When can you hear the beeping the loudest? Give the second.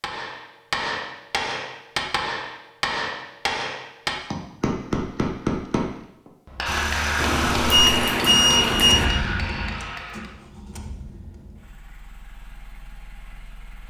8 s.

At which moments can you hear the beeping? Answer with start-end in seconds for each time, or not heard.
7.2-9.1.